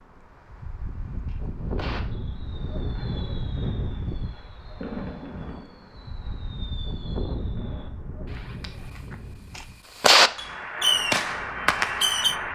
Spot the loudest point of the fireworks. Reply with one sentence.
The loudest moment of the fireworks is at 10 seconds.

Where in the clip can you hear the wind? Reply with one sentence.
You can hear the wind from 0.0 to 12.4 s.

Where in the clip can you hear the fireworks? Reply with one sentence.
You can hear the fireworks from 1.2 to 12.3 s.